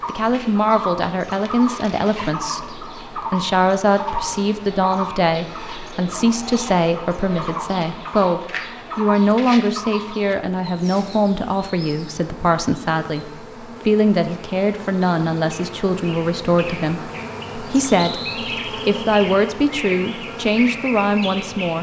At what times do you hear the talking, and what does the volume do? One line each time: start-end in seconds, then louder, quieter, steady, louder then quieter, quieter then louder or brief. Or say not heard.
0.1-21.7 steady.